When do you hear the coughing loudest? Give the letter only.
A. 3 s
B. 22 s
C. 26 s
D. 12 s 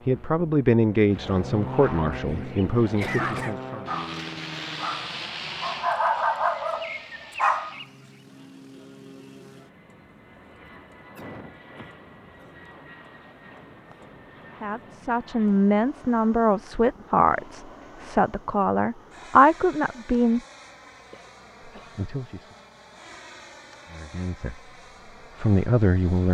A.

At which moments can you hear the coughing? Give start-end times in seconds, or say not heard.
2.1-3.6, 11.2-12.5, 21.1-21.9.